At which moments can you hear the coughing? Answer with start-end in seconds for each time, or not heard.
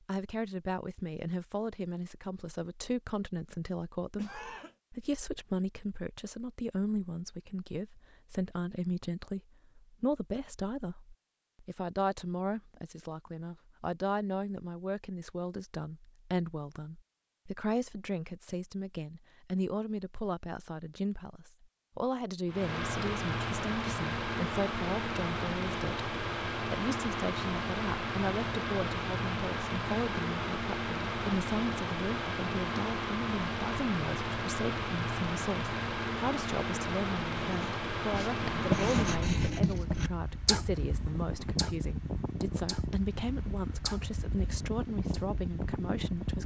4.2-4.8.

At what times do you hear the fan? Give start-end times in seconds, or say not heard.
22.4-46.4.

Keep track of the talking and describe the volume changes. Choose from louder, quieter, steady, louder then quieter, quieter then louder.
steady.